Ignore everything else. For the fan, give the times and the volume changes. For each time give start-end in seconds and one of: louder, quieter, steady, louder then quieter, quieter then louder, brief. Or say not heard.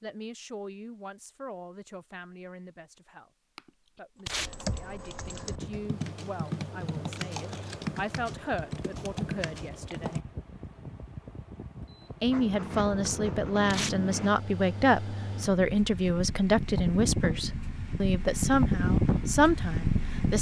5.2-20.3 louder.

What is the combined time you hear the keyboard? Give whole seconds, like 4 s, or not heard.
7 s.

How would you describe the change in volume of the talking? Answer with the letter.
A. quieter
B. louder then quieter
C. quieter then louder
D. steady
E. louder
E.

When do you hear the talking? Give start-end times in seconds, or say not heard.
0.0-3.3, 4.0-10.2, 12.2-20.3.